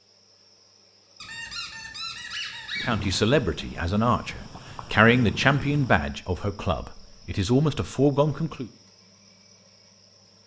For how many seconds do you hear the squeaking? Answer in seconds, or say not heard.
2 s.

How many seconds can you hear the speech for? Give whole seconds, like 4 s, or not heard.
6 s.